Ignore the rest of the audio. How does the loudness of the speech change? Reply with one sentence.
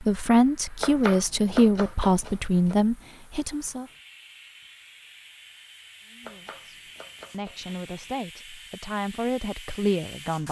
The loudness of the speech goes down, then up.